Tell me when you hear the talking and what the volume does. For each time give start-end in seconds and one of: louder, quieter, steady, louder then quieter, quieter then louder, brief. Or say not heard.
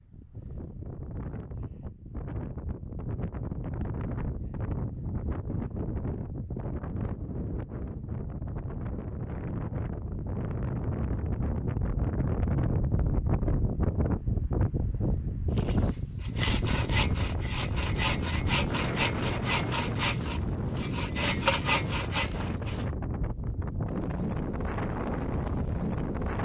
not heard.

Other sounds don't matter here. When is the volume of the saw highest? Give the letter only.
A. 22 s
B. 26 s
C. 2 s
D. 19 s
A.